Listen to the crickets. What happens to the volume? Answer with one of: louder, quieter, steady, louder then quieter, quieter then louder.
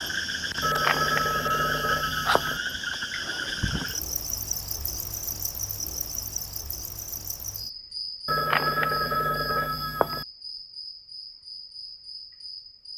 quieter.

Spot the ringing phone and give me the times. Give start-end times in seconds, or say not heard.
0.6-2.6, 8.2-10.2.